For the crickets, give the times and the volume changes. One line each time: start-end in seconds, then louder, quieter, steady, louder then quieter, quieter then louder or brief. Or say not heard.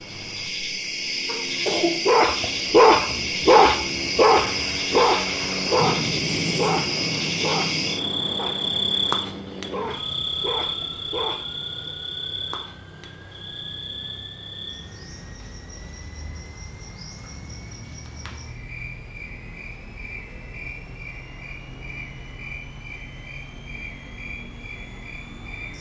0.0-25.7 quieter.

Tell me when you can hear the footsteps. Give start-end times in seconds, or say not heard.
not heard.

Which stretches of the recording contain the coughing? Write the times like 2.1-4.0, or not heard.
1.2-2.0.